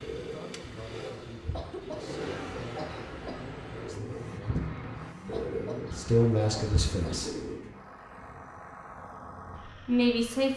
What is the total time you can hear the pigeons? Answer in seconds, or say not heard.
8 s.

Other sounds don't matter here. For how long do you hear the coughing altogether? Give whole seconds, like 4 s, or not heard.
4 s.